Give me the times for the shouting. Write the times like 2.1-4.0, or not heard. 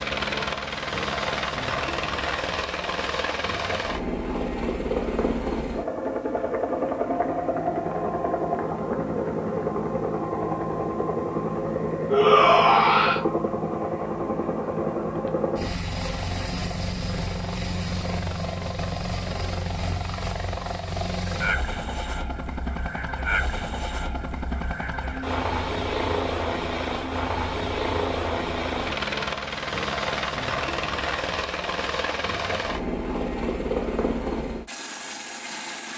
12.1-13.2.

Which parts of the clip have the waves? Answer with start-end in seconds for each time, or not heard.
not heard.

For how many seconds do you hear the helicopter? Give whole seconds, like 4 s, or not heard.
36 s.